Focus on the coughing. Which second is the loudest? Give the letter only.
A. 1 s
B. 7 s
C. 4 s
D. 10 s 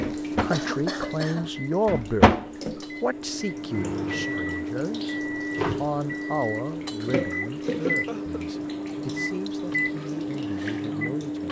A.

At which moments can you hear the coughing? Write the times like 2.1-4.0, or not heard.
0.1-1.5, 7.8-8.4.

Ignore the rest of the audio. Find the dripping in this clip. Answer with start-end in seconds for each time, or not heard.
0.0-11.4.